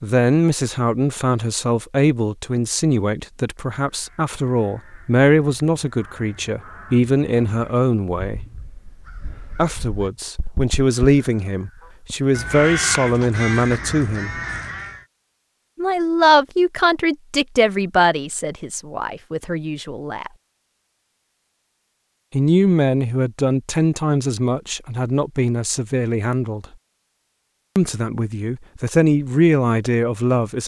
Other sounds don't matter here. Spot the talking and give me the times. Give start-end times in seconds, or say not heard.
0.0-8.4, 9.6-14.3, 15.8-20.3, 22.3-26.6, 27.8-30.6.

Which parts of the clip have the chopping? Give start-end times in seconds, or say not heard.
not heard.